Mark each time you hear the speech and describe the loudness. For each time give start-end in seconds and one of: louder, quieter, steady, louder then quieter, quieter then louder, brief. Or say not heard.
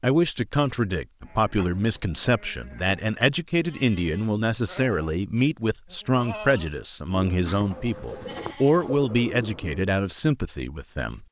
0.0-11.2 steady.